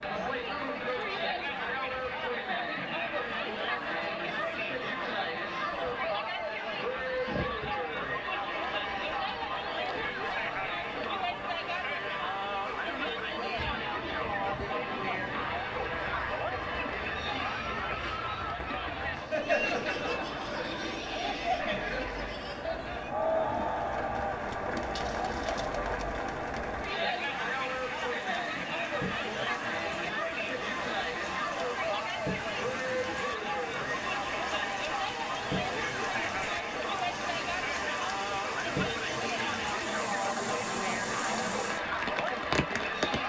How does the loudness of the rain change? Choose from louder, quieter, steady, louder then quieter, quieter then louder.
louder.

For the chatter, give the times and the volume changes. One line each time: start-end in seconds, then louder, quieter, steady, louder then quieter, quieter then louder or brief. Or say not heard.
0.0-43.2 steady.